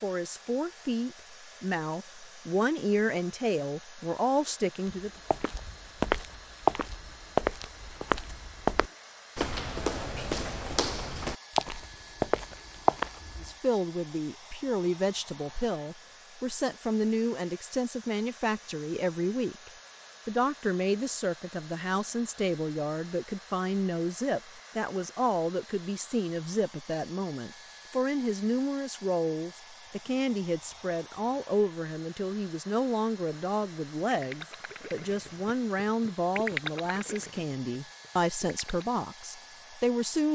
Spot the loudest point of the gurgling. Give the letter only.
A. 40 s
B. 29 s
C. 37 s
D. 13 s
C.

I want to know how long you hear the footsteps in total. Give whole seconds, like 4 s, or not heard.
9 s.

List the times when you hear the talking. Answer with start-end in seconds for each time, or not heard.
0.0-5.1, 13.4-40.2.